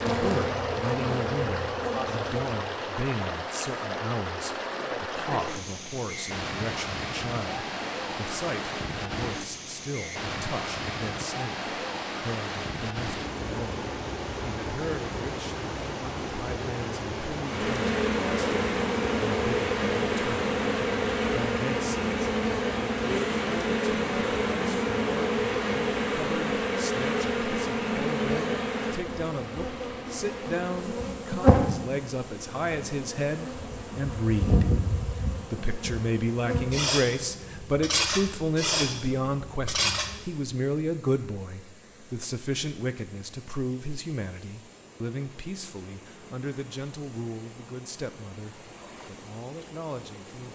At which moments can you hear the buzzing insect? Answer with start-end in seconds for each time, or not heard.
0.0-2.5, 17.4-40.3.